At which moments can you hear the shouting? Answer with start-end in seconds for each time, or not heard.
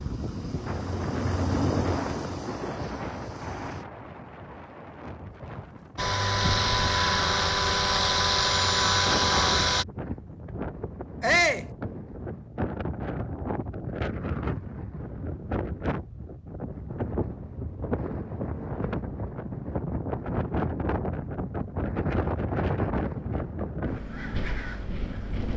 11.2-11.7.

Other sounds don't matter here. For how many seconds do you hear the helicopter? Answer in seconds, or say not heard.
8 s.